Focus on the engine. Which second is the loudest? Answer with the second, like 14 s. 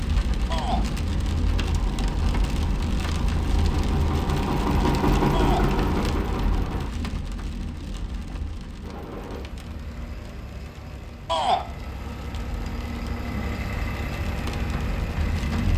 5 s.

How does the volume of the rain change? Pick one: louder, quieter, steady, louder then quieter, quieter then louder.
quieter then louder.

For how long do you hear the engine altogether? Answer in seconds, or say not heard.
12 s.